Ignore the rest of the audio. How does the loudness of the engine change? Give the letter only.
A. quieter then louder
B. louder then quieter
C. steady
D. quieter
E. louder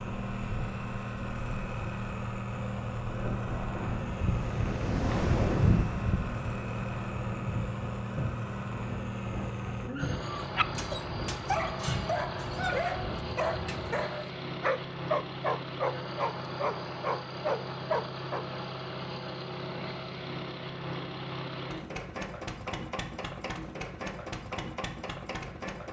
C.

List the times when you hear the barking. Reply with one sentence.
The barking can be heard from 9.9 to 18.4 s.